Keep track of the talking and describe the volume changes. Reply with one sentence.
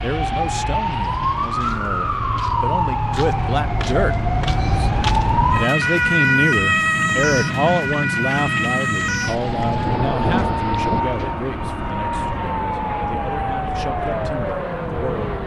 The volume of the talking goes up, then down.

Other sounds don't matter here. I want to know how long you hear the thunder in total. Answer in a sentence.
The thunder can be heard for 2 seconds in total.